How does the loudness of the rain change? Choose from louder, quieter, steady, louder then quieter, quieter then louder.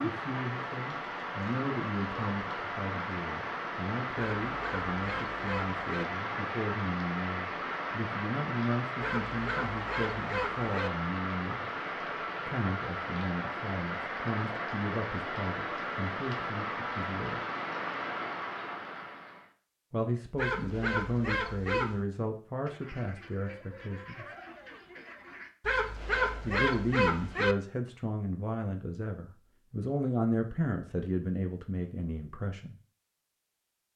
steady.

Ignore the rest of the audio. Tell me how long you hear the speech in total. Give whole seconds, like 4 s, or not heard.
27 s.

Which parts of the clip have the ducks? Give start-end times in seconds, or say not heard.
22.6-25.5.